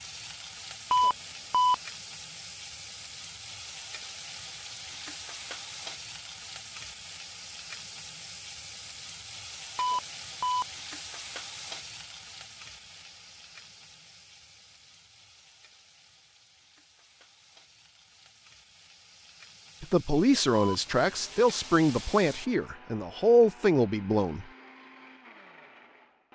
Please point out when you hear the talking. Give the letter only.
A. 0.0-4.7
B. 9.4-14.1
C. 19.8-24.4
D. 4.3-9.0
C.